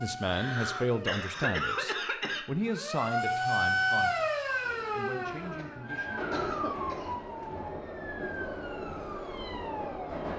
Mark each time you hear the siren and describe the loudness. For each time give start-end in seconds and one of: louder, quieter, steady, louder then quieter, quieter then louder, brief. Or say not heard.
0.0-10.2 louder then quieter.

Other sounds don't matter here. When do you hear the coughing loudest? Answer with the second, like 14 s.
2 s.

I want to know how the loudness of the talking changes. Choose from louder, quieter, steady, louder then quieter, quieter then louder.
quieter.